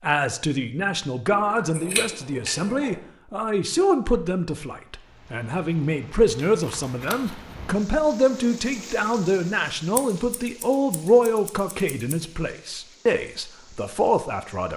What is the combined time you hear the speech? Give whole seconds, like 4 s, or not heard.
15 s.